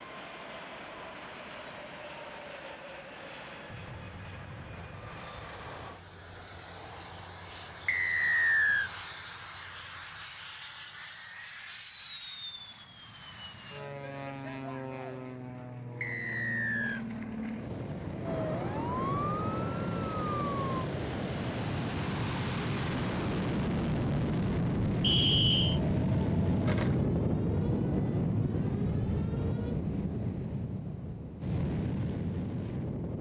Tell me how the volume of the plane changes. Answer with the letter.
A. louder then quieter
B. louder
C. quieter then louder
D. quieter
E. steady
B.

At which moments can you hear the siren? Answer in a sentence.
You can hear the siren from 18.2 to 20.9 s and from 25.6 to 29.8 s.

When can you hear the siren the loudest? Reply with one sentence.
The loudest moment of the siren is at 19 seconds.